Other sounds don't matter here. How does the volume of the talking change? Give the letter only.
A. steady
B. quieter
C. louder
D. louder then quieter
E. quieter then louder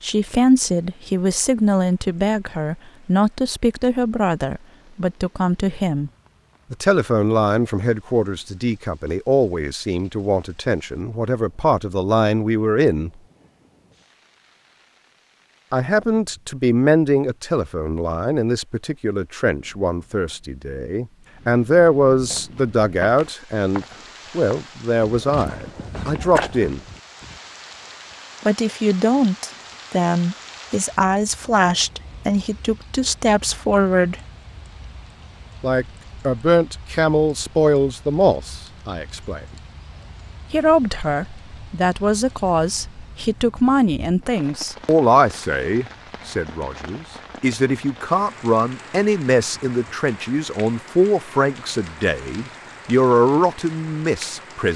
A.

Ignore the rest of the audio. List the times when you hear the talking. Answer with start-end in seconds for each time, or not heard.
0.0-6.1, 6.7-13.1, 15.7-26.8, 28.4-34.1, 35.6-39.5, 40.5-54.7.